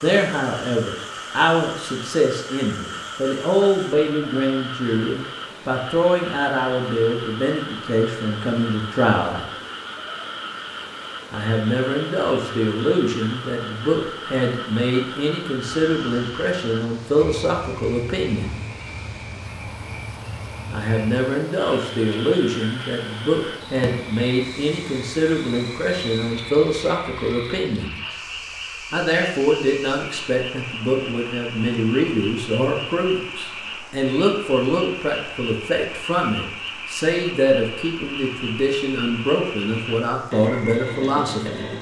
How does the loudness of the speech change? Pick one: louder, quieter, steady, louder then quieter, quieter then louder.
steady.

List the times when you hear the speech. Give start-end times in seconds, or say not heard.
0.0-9.4, 11.3-18.6, 20.7-28.0, 28.9-41.6.